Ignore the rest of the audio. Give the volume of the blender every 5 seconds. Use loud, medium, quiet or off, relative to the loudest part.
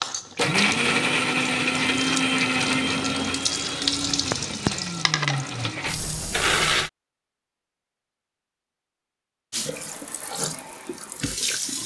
loud, loud, off.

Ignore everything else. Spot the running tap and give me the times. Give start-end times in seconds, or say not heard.
0.0-6.5, 9.5-11.8.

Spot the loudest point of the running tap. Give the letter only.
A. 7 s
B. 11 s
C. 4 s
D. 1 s
C.